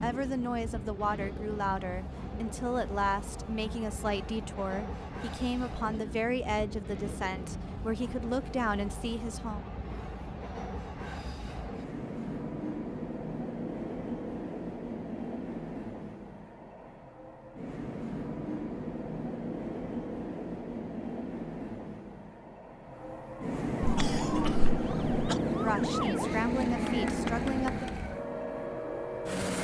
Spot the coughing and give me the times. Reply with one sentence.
You can hear the coughing from 23.8 to 25.4 s.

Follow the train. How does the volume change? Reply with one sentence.
The volume of the train goes up.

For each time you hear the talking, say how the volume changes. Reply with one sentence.
The talking can be heard from 0.0 to 9.6 s, at a steady volume; and briefly from 25.4 to 27.9 s.